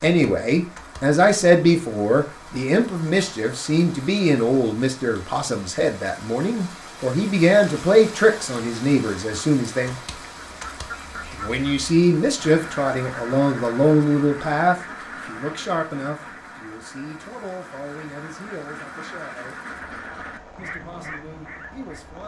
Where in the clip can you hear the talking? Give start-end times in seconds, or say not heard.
0.0-9.9, 11.3-19.6, 20.6-22.2.